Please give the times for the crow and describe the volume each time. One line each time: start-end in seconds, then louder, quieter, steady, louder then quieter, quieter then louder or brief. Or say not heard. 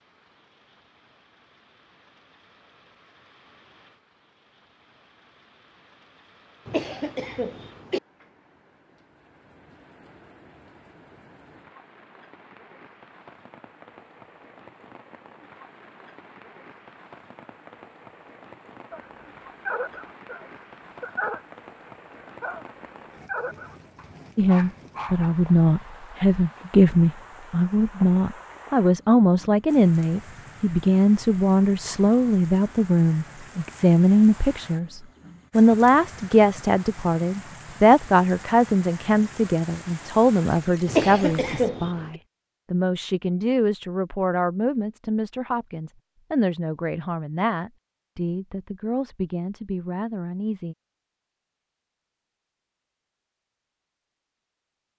not heard.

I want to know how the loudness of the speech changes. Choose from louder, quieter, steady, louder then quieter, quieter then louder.
quieter.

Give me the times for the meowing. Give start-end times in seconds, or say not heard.
not heard.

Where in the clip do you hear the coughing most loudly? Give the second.
41 s.